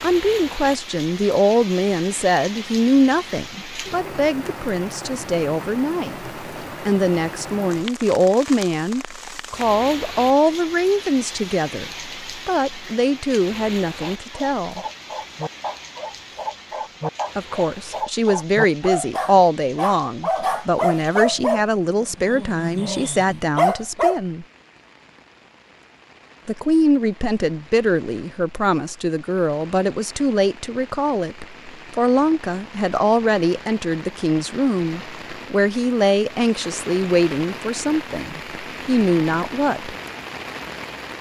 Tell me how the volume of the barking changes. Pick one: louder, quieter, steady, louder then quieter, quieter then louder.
louder.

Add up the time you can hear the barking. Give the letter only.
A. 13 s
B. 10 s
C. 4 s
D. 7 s
B.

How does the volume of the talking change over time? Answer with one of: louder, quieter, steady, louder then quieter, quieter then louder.
steady.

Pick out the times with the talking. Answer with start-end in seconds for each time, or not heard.
0.0-14.8, 17.4-24.4, 26.4-40.0.